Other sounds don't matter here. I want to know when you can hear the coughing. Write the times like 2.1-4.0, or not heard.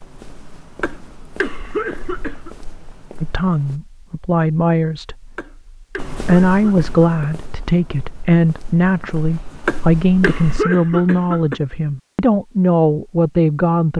0.8-2.5, 5.3-7.3, 9.7-11.6.